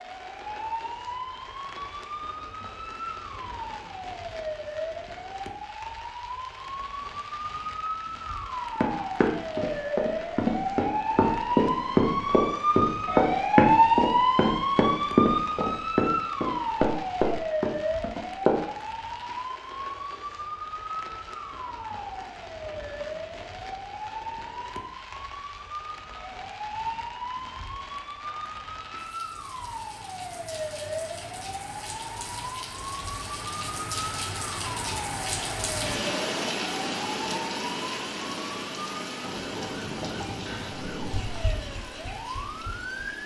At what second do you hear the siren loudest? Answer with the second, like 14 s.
14 s.